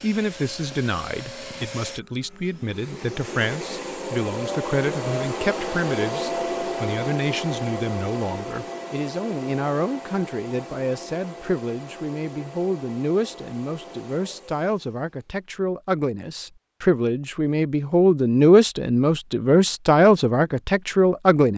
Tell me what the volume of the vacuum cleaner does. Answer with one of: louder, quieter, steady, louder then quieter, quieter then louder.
louder then quieter.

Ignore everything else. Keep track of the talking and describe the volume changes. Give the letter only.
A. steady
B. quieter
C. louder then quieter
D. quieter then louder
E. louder
E.